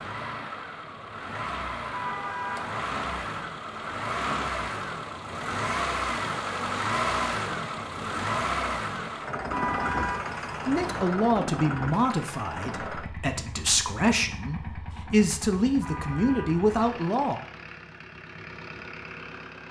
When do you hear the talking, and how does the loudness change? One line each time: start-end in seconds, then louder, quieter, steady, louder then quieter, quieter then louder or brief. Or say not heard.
10.7-17.4 quieter then louder.